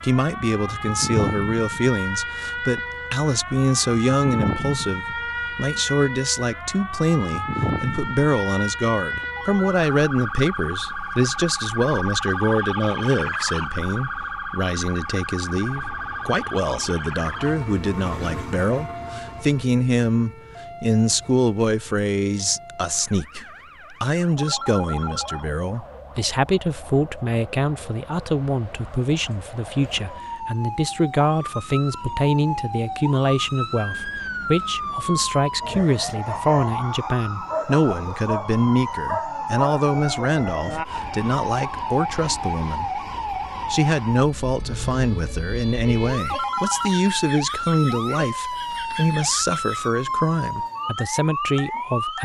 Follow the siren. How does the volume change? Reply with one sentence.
The loudness of the siren goes down, then up.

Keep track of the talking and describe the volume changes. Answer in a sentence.
The loudness of the talking stays about the same.